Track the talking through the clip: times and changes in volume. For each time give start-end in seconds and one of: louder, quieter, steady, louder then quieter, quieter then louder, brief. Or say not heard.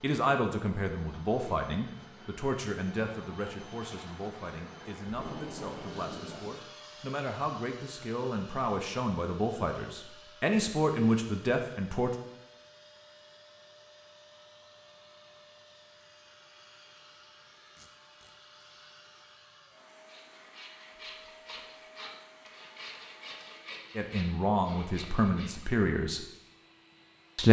0.0-12.1 quieter then louder
23.9-26.2 brief.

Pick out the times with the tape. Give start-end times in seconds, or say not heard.
5.0-6.6, 17.8-18.6.